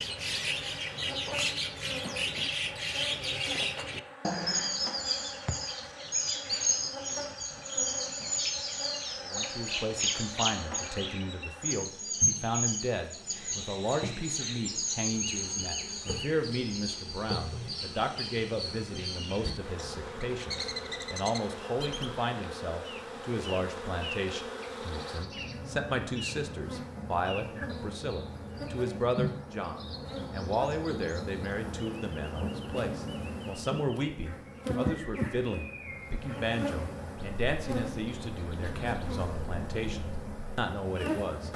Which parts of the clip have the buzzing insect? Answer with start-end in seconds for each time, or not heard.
0.0-41.5.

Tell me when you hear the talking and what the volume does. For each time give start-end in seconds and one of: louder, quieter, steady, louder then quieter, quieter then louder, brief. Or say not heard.
9.2-41.5 steady.